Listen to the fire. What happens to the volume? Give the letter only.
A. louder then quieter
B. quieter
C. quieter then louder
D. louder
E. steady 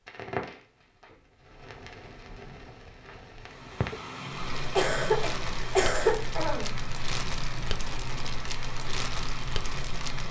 D.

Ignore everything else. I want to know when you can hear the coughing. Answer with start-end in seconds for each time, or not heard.
4.8-6.7.